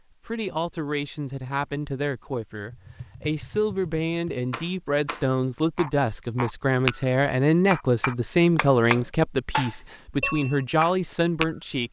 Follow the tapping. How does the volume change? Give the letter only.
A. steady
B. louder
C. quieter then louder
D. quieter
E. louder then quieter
B.